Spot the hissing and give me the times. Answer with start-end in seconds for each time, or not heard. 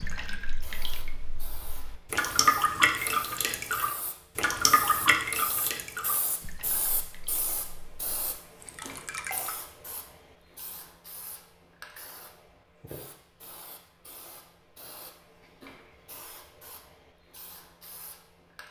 0.0-18.6.